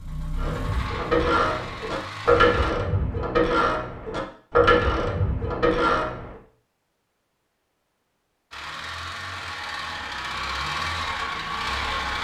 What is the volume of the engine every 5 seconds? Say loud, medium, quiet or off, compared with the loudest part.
medium, medium, loud.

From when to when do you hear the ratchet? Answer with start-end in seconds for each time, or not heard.
0.3-6.3.